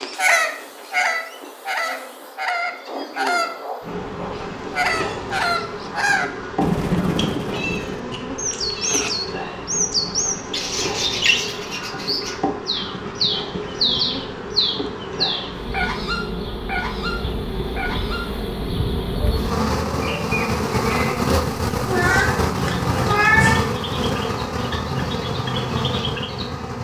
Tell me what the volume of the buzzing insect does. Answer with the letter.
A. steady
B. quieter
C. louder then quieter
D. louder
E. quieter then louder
D.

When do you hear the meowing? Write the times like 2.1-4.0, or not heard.
7.2-9.1, 21.9-23.6.